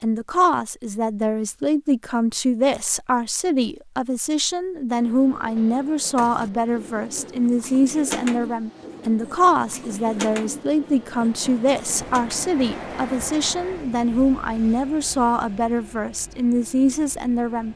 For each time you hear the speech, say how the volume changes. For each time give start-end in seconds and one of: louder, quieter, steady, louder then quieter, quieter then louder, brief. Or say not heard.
0.0-17.7 steady.